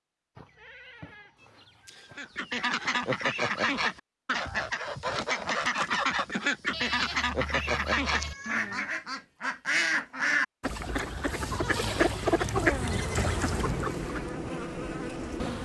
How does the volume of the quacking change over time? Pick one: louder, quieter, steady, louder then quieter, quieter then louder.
steady.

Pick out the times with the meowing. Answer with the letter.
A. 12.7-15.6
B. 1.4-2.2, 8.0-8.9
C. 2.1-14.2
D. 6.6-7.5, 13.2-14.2
B.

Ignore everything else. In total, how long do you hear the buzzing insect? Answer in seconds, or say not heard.
3 s.